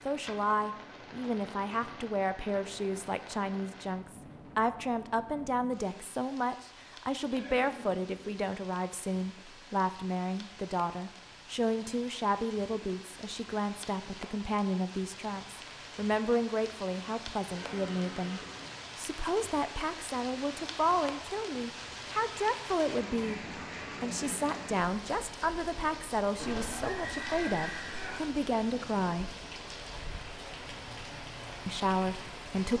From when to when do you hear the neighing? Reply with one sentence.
You can hear the neighing from 7.3 to 8.4 s, from 17.6 to 18.7 s and from 26.4 to 28.2 s.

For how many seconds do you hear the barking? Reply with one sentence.
The barking can't be heard in this clip.